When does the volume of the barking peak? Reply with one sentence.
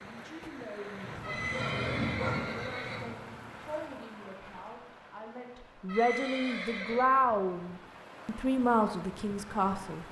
The loudest moment of the barking is at 2 seconds.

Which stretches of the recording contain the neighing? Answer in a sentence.
The neighing can be heard from 1.2 to 3.1 s and from 5.8 to 7.1 s.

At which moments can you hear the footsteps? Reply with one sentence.
The footsteps can't be heard in this clip.